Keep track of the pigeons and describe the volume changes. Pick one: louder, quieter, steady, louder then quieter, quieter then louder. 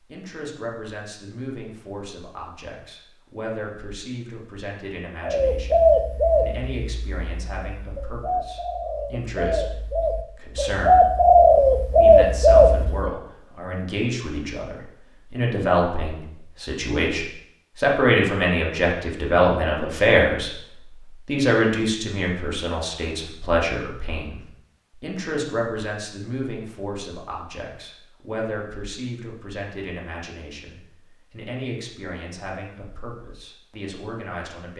quieter then louder.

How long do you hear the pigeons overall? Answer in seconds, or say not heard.
8 s.